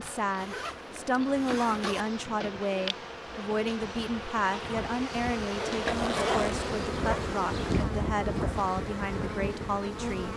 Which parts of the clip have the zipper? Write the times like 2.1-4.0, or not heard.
0.3-2.0, 5.5-6.7.